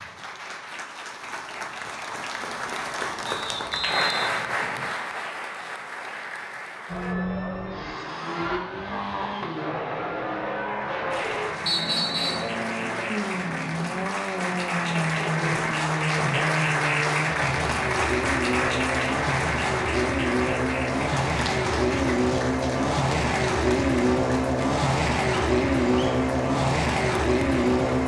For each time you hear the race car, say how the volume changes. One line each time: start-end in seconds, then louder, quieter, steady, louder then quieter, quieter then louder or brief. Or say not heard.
6.8-28.0 louder.